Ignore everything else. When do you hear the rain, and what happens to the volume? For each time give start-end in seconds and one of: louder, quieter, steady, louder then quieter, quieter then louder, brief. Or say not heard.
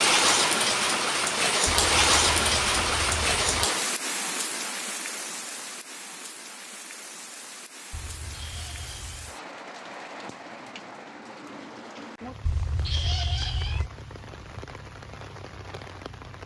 0.0-16.4 quieter.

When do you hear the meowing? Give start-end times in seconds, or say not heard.
1.6-3.6, 7.9-9.3, 12.4-13.9.